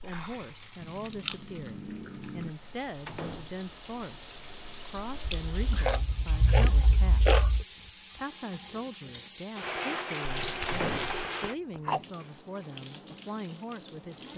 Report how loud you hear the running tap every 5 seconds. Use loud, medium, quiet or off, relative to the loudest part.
medium, loud, loud.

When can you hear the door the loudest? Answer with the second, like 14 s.
11 s.